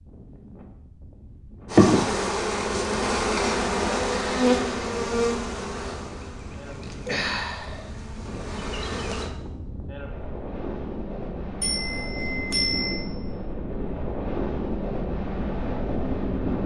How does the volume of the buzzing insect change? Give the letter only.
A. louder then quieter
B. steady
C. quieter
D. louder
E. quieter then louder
C.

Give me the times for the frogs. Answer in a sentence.
The frogs can't be heard in this clip.